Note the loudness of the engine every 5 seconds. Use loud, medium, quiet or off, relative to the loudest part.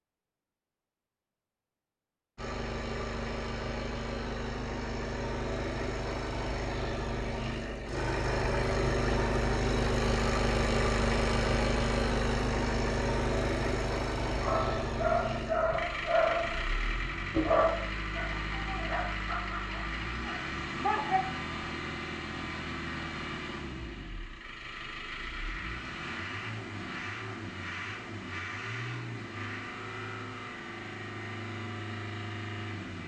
medium, loud, loud, medium, medium, medium, medium.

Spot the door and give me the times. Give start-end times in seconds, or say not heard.
not heard.